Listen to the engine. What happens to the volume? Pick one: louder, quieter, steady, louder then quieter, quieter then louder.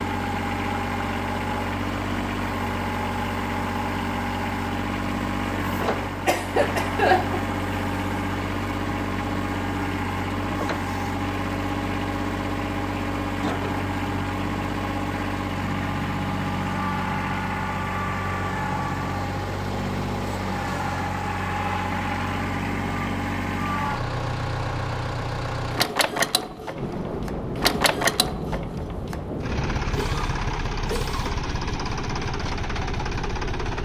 steady.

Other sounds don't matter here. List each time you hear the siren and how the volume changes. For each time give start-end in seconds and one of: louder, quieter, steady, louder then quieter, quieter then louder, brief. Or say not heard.
not heard.